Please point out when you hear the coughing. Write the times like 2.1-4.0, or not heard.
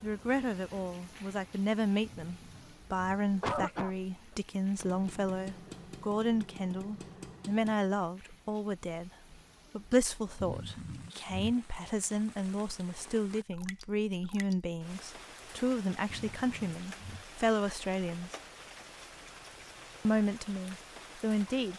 2.0-3.9, 10.4-11.6, 16.1-17.2.